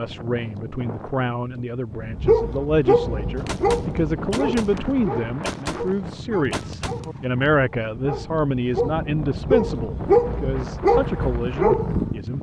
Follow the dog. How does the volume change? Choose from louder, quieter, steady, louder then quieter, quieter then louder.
quieter then louder.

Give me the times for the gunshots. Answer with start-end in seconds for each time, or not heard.
3.4-7.3.